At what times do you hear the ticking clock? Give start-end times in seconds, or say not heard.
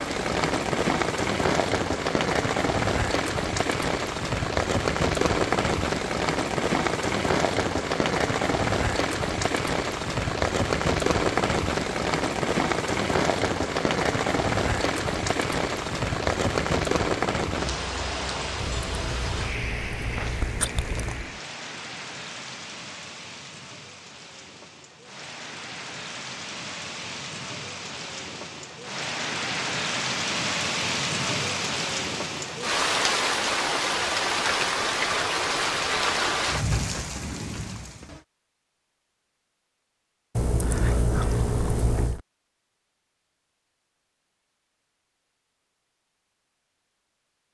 not heard.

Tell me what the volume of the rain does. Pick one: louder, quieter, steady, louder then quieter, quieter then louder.
quieter then louder.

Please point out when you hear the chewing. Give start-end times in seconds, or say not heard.
18.6-21.3, 40.4-42.2.